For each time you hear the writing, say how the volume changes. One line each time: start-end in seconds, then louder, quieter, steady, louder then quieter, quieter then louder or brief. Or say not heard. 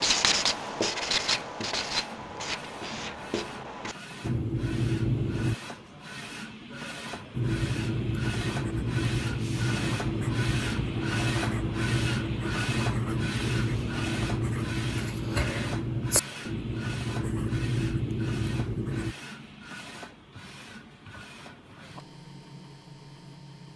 0.0-5.5 quieter then louder
7.3-19.1 steady.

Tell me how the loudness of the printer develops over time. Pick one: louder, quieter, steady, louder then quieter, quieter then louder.
louder then quieter.